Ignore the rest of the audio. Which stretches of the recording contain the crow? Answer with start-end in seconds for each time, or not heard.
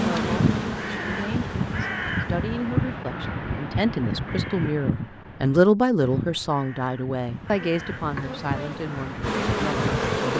0.1-10.2.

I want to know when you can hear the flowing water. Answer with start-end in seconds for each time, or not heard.
not heard.